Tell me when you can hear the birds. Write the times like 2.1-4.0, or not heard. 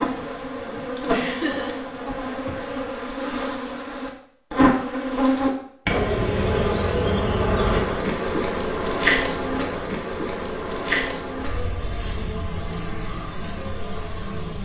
not heard.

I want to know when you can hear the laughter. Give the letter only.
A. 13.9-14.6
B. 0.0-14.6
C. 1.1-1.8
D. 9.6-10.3
C.